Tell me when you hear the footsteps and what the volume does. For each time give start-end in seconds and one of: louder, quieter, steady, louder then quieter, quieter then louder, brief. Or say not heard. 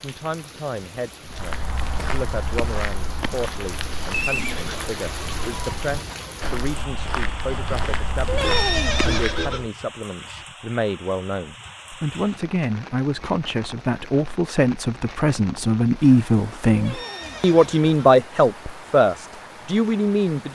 1.2-9.4 quieter then louder.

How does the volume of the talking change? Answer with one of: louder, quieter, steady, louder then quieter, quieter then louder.
louder.